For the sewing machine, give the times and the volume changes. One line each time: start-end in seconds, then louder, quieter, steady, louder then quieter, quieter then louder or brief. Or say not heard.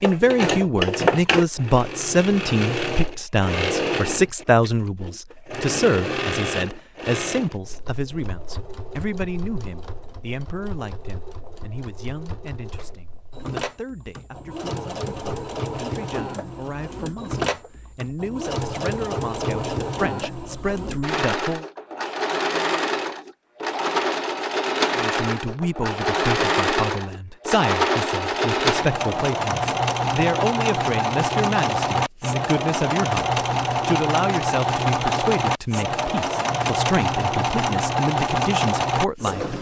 0.0-39.5 quieter then louder.